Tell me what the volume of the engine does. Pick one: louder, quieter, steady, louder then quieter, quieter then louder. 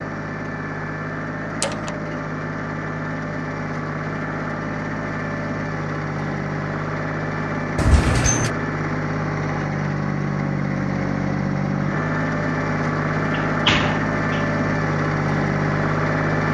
louder.